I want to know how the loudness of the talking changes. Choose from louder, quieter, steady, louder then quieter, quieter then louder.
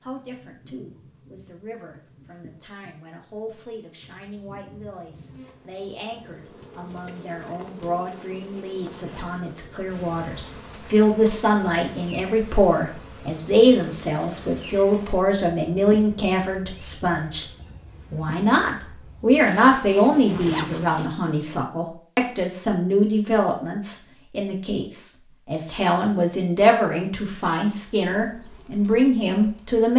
louder.